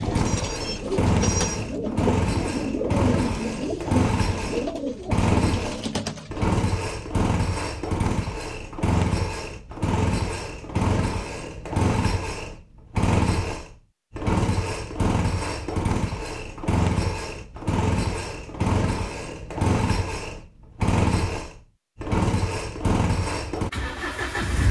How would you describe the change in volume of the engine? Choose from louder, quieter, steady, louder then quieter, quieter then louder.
steady.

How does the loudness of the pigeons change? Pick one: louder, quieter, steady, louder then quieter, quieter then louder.
steady.